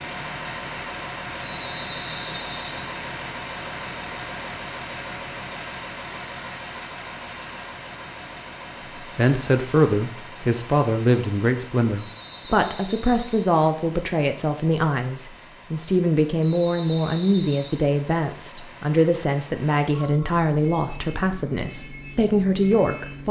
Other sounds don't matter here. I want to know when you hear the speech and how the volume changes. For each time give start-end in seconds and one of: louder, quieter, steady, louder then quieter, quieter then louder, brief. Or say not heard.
8.9-23.2 steady.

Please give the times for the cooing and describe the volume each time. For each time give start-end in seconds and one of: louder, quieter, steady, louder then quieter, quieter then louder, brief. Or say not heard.
not heard.